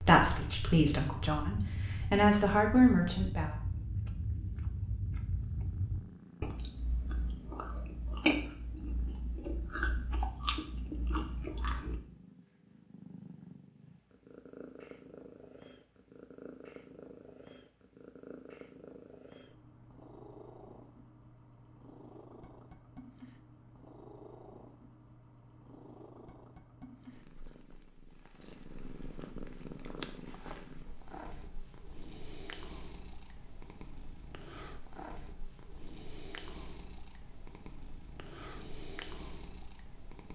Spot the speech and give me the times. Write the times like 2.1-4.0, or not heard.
0.0-3.5.